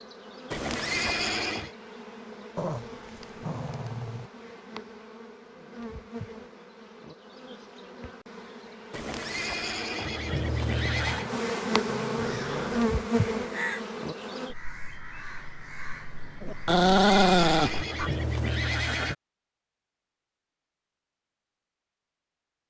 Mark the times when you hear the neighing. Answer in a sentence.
You can hear the neighing from 0.5 to 1.7 s, from 8.9 to 11.3 s and from 16.6 to 19.1 s.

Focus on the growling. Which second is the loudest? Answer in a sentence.
The volume of the growling peaks at 17 seconds.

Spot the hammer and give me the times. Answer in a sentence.
The hammer can't be heard in this clip.